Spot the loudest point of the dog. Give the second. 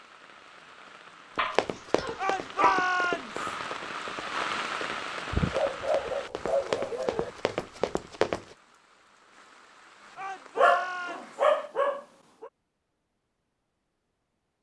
11 s.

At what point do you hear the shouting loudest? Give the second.
3 s.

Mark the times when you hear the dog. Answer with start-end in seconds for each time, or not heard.
1.4-2.9, 5.3-7.3, 10.6-12.5.